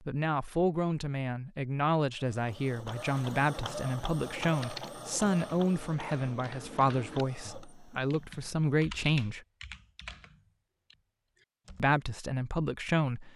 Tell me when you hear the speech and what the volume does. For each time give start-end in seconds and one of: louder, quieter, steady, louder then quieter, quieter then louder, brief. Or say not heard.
0.1-9.4 steady
11.8-13.3 brief.